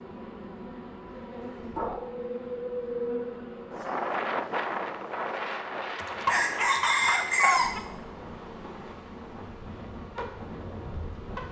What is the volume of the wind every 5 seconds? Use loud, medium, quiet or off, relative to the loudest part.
loud, medium, medium.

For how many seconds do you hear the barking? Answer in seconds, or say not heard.
3 s.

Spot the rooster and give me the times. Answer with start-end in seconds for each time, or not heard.
6.2-7.8.